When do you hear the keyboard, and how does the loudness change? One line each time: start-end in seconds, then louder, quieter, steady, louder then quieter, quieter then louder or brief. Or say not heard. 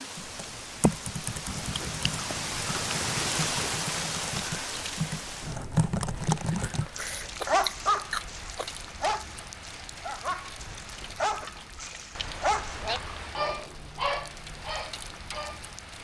0.1-6.9 quieter then louder.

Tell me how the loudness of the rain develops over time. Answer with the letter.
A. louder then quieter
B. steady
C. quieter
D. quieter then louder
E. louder
C.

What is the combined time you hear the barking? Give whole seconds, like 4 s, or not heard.
9 s.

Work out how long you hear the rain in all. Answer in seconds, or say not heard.
16 s.